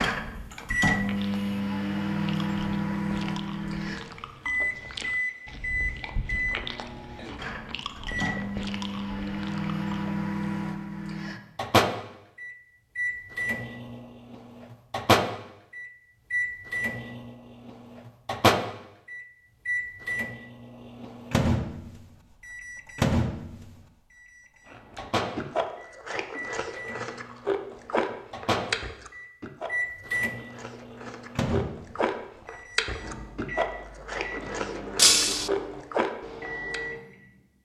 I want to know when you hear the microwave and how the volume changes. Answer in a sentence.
You can hear the microwave from 0.0 to 37.3 s, getting quieter.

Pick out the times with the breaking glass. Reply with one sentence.
The breaking glass can be heard from 35.0 to 35.5 s.